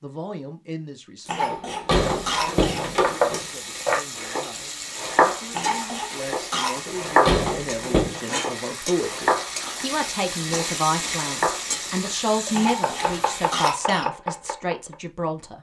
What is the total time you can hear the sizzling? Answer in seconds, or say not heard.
12 s.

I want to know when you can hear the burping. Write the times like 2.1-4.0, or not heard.
not heard.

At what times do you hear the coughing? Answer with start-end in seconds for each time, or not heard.
1.2-2.9, 5.5-6.8, 12.5-14.1.